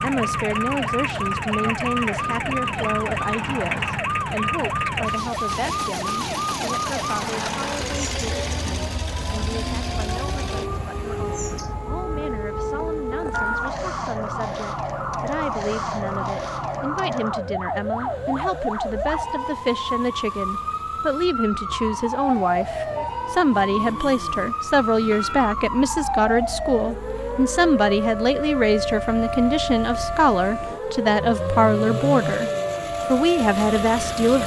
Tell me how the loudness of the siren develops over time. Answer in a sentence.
The loudness of the siren stays about the same.